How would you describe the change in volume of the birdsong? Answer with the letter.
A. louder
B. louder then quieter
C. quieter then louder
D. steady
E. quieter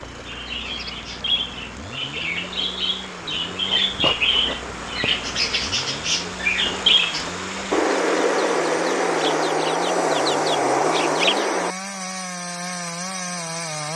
A.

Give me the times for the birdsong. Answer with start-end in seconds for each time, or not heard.
0.1-11.8.